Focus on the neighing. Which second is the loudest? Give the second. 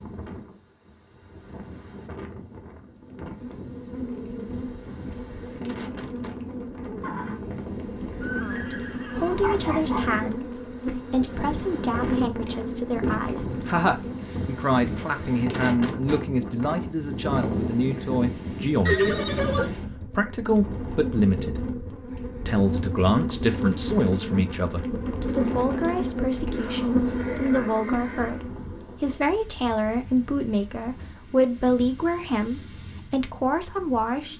19 s.